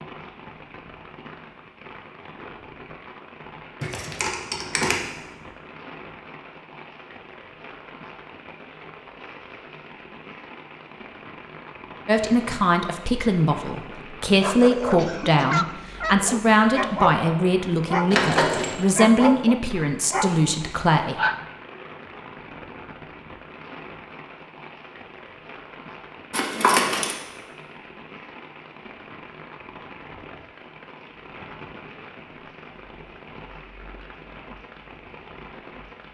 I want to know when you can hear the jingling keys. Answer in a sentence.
The jingling keys can be heard from 3.8 to 5.0 s, from 18.1 to 18.9 s and from 26.3 to 27.1 s.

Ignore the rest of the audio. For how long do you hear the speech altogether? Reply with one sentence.
The speech can be heard for 9 seconds in total.